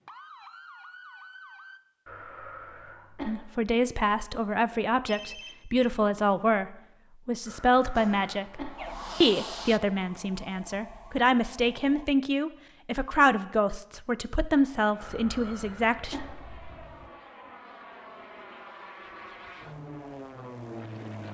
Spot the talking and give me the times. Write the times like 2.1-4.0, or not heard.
3.2-16.1.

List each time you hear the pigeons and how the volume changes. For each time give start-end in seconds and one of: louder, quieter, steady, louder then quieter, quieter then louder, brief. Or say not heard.
not heard.